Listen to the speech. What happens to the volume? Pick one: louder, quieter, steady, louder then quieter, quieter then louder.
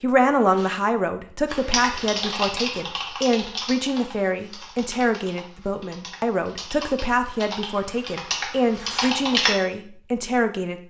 steady.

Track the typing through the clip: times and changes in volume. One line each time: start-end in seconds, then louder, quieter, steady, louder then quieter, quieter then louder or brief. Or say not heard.
1.5-9.6 quieter then louder.